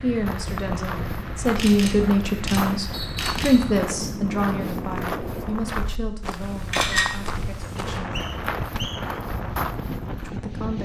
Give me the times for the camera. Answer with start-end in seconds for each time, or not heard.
1.6-3.5, 6.4-8.0.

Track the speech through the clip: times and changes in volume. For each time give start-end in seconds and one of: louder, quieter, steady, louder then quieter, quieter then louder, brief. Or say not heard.
0.0-8.2 quieter
10.2-10.8 brief.